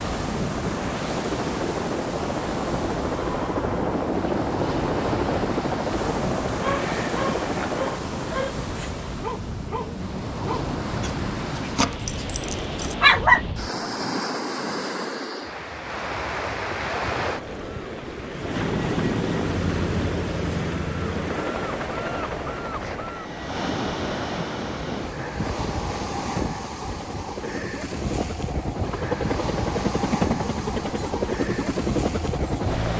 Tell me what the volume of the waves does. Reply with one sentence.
The loudness of the waves stays about the same.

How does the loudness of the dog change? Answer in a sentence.
The loudness of the dog goes up.